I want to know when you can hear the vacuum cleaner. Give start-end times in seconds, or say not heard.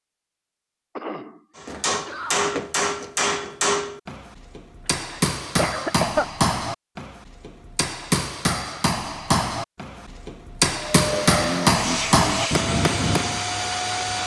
10.7-14.2.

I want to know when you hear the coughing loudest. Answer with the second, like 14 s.
6 s.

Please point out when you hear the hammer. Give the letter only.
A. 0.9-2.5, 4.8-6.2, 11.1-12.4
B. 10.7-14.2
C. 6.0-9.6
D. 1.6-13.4
D.